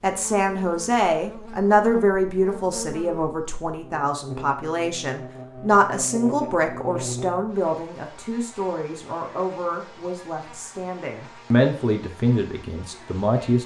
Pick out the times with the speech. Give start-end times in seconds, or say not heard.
0.0-13.6.